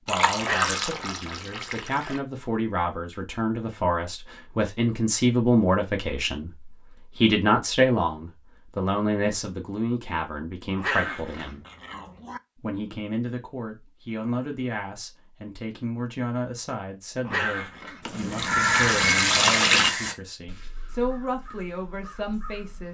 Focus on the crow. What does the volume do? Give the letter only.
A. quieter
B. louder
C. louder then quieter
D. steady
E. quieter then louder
A.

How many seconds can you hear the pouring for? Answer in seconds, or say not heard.
4 s.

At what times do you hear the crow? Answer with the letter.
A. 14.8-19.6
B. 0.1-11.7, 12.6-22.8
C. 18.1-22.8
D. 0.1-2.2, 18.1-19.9
C.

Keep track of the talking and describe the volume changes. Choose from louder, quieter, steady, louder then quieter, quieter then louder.
louder then quieter.